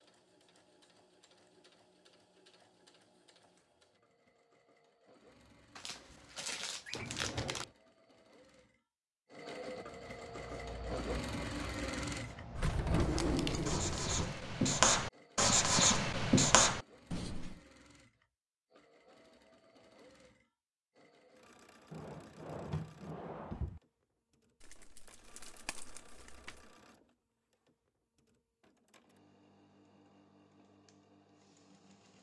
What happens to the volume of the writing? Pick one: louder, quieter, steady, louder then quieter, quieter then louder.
louder.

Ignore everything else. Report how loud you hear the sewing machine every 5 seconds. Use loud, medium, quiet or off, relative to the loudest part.
quiet, medium, loud, quiet, quiet, quiet, quiet.